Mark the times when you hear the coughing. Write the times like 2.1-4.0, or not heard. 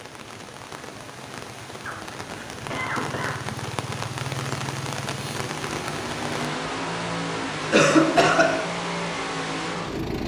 1.9-3.4, 7.7-8.6.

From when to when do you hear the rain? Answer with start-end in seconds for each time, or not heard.
0.0-6.5.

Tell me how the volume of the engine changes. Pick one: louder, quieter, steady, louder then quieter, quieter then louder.
steady.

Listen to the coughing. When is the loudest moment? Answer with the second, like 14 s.
8 s.